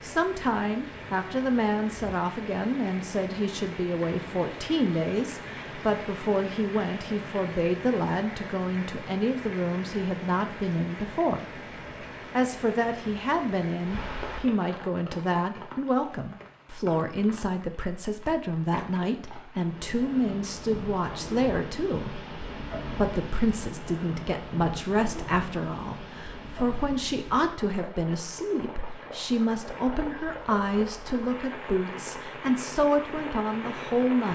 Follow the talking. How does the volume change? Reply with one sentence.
The loudness of the talking stays about the same.